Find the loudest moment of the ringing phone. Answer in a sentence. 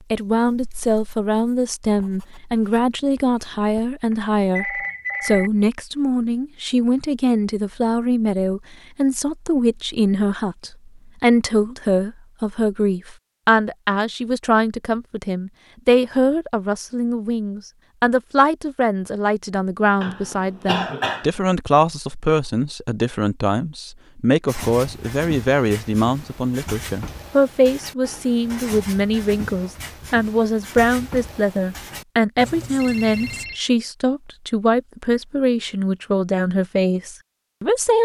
The volume of the ringing phone peaks at 5 seconds.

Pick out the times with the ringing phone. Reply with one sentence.
The ringing phone can be heard from 4.1 to 5.5 s and from 32.8 to 33.6 s.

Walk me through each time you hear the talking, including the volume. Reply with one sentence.
You can hear the talking from 0.1 to 38.0 s, at a steady volume.